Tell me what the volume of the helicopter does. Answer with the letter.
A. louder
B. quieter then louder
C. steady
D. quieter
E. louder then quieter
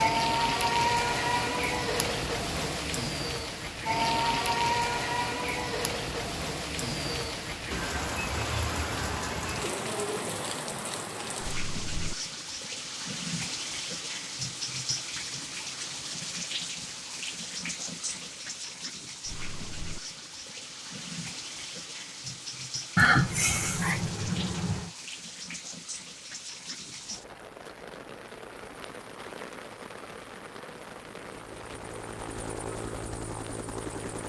A.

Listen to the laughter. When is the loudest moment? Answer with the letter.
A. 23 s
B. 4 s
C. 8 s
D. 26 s
A.